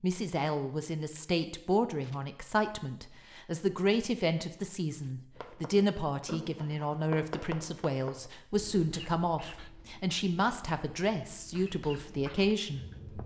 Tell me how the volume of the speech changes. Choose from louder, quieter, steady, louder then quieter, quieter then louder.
steady.